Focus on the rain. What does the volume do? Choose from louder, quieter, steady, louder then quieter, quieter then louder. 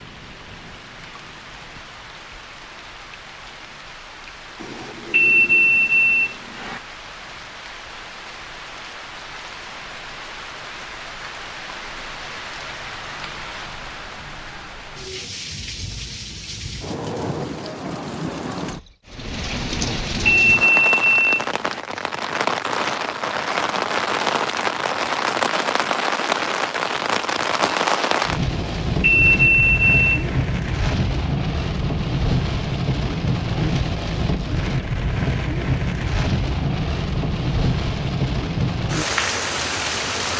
louder.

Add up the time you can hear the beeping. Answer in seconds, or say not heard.
6 s.